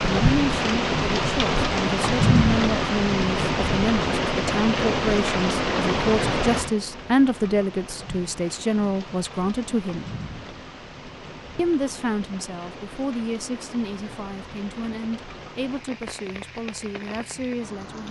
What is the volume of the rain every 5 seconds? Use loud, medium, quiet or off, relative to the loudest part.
loud, medium, quiet, quiet.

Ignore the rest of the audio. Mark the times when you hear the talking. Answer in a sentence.
The talking can be heard from 0.0 to 10.1 s and from 11.6 to 18.0 s.